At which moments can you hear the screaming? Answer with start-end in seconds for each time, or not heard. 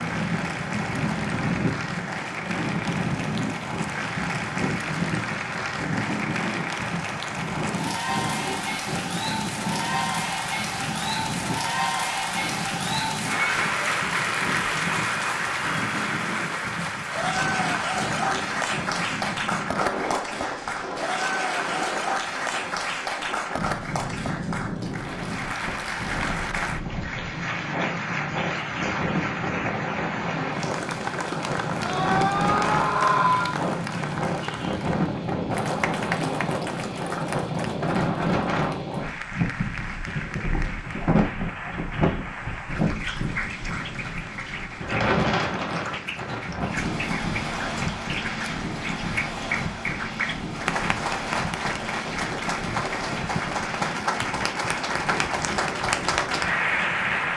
31.8-33.5.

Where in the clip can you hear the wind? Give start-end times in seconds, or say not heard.
0.0-57.3.